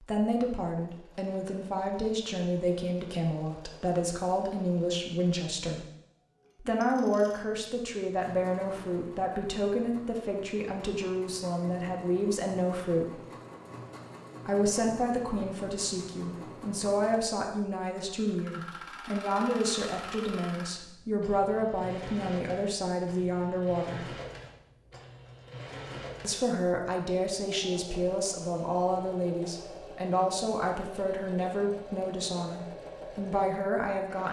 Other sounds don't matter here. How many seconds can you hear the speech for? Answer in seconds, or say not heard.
30 s.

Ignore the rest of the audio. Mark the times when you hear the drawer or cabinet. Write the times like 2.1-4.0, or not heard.
not heard.